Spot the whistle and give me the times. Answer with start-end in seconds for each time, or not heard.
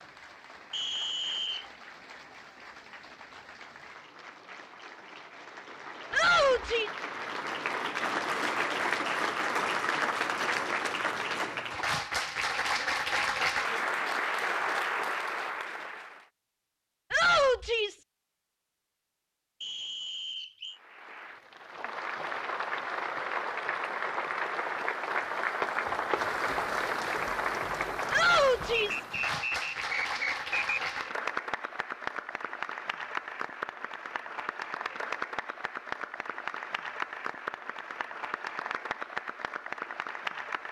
0.7-1.7, 19.6-20.8, 28.7-30.8.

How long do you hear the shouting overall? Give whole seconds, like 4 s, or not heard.
3 s.